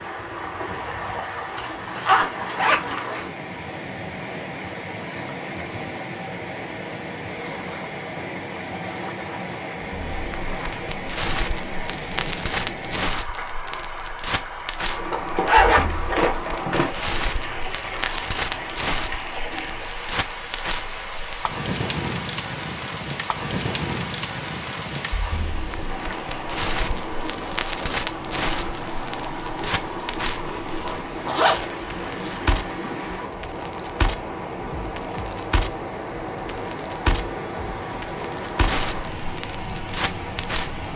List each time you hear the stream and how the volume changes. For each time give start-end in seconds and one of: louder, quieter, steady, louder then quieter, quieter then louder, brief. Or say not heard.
0.0-40.9 steady.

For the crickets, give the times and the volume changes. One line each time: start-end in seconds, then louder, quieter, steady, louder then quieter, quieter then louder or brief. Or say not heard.
not heard.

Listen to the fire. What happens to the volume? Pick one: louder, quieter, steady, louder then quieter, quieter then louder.
steady.